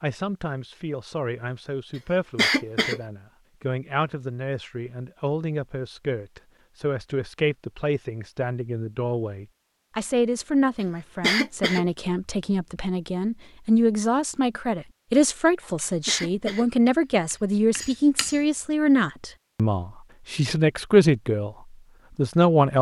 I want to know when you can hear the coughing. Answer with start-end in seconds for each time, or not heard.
2.4-3.0, 11.2-11.8, 16.1-16.6.